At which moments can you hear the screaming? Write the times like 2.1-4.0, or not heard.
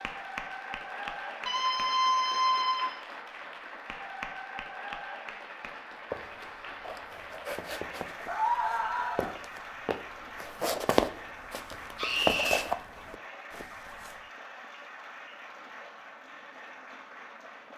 1.4-3.0, 8.2-9.3, 11.9-12.7.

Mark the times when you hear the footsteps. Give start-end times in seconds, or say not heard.
6.1-14.2.